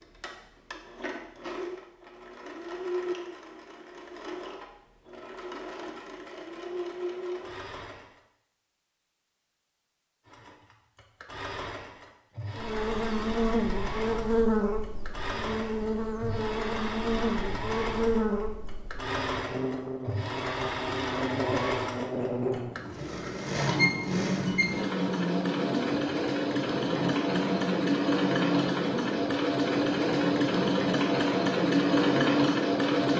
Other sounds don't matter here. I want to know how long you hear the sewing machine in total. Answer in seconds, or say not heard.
31 s.